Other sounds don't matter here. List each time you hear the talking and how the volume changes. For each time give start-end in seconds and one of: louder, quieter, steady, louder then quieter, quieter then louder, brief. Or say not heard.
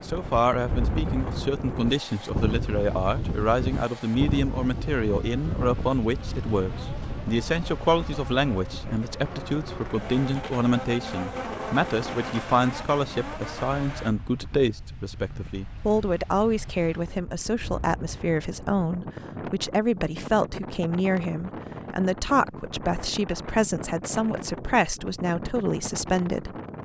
0.0-26.5 steady.